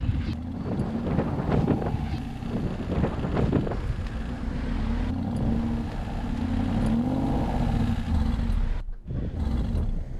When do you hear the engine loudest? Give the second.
7 s.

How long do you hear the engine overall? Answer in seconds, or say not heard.
10 s.